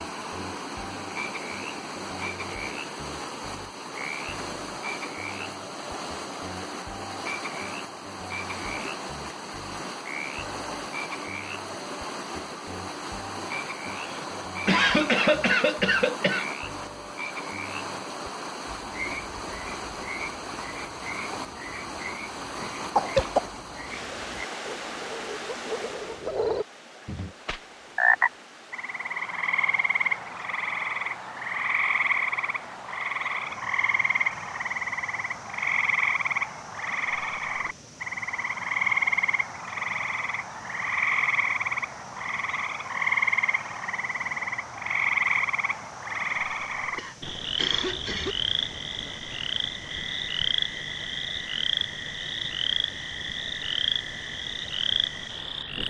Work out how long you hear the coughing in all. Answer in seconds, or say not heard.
4 s.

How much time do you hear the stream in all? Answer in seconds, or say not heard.
56 s.